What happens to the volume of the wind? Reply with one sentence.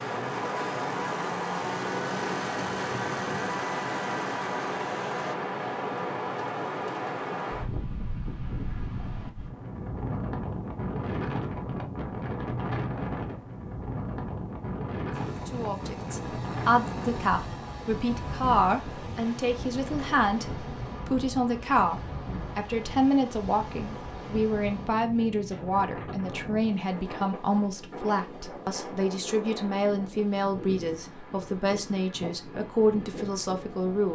The volume of the wind goes down.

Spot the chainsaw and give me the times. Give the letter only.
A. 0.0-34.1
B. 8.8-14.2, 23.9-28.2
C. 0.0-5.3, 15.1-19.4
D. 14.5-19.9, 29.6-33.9
C.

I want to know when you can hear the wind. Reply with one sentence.
You can hear the wind from 0.0 to 34.1 s.